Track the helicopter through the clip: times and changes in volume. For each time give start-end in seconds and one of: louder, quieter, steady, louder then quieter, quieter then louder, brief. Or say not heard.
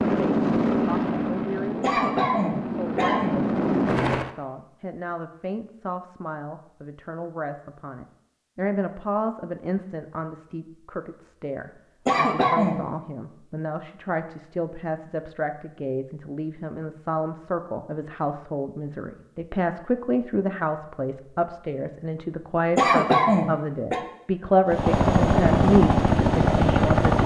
0.0-4.3 quieter then louder
24.6-27.2 brief.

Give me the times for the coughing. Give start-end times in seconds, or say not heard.
1.8-3.4, 12.1-12.8, 22.8-24.0.